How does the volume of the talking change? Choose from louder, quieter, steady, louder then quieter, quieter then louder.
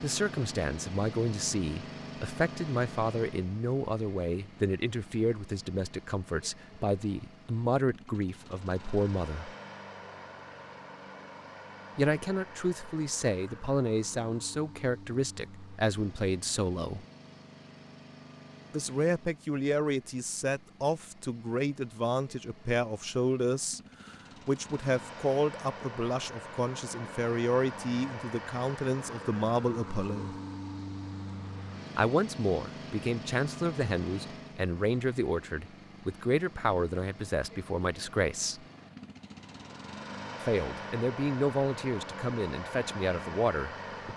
steady.